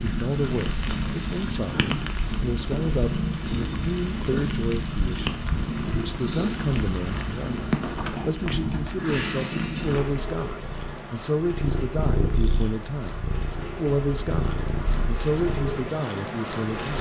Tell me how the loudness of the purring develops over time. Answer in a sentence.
The volume of the purring stays about the same.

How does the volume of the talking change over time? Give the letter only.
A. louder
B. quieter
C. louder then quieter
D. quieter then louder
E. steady
E.